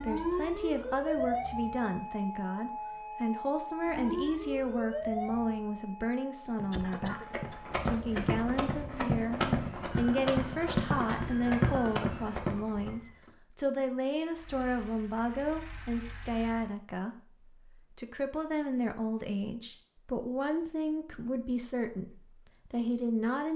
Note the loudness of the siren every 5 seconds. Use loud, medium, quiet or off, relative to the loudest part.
loud, medium, medium, off, off.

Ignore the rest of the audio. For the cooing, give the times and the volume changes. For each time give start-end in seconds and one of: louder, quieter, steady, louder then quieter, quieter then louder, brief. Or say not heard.
not heard.